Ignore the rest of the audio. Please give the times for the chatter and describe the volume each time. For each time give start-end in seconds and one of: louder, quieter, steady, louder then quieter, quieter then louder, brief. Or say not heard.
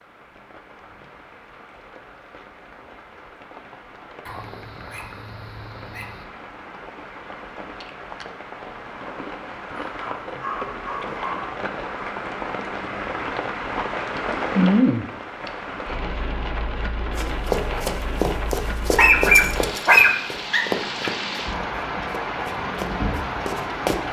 not heard.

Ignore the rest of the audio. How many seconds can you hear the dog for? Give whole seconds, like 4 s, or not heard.
6 s.